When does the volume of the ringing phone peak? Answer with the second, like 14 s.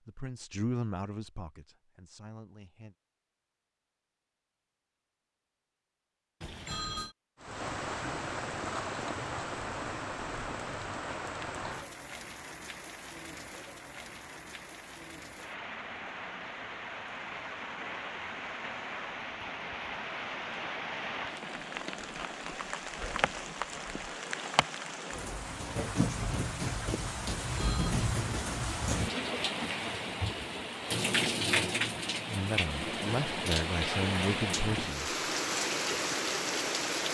7 s.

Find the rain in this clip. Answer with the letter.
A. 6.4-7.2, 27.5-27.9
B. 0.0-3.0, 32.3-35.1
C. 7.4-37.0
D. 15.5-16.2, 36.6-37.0
C.